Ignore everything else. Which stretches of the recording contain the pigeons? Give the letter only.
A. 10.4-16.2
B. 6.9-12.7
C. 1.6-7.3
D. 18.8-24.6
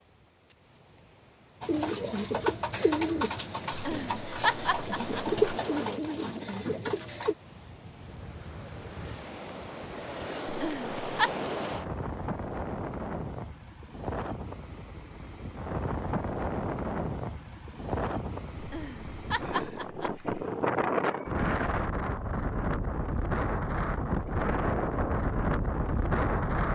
C.